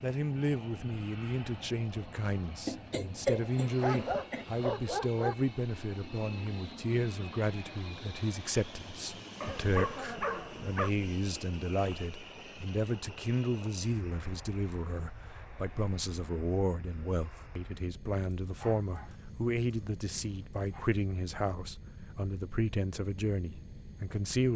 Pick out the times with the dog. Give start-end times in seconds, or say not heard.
3.8-5.3, 9.4-10.9, 18.3-20.9.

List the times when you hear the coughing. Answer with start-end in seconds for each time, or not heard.
2.6-4.5.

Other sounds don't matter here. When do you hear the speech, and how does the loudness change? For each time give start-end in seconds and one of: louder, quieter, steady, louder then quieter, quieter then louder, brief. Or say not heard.
0.0-24.5 steady.